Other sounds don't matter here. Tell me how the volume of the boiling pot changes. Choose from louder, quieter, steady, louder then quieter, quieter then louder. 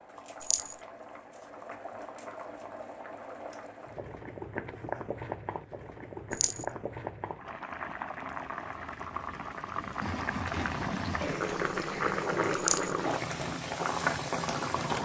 louder.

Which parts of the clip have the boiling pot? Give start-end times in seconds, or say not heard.
0.0-14.9.